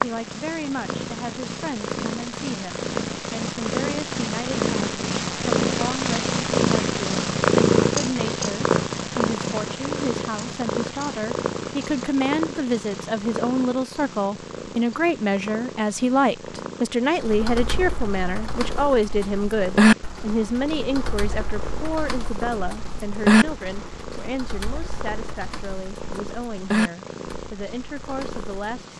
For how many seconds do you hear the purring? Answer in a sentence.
You can hear the purring for 29 seconds altogether.